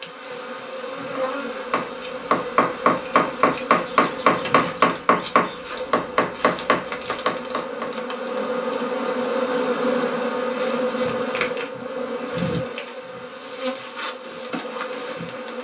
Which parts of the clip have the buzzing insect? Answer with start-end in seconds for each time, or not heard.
0.0-15.5.